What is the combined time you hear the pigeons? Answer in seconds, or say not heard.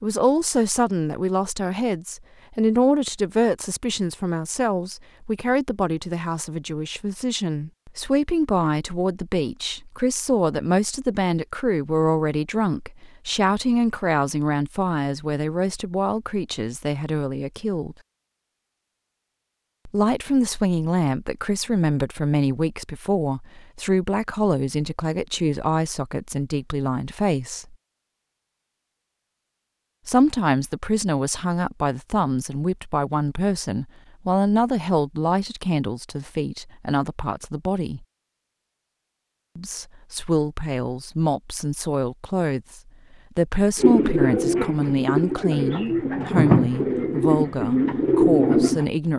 5 s.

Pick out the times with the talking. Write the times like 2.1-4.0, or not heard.
0.0-17.9, 19.9-27.8, 30.1-38.0, 39.5-49.1.